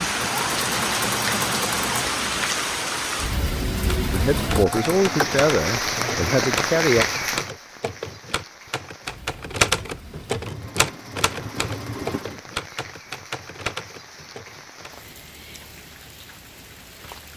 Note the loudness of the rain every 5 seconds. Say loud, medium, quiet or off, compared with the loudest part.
loud, loud, quiet, quiet.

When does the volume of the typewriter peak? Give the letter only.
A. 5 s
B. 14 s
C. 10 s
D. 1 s
C.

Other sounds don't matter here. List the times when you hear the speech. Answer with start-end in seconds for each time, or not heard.
4.1-7.0.